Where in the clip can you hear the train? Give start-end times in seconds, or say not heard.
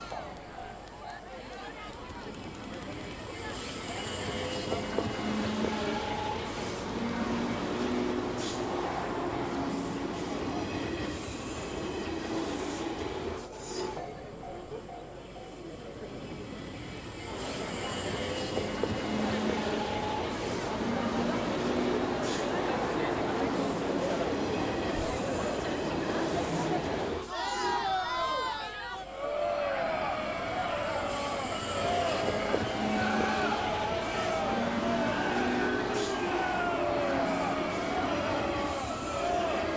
0.0-39.7.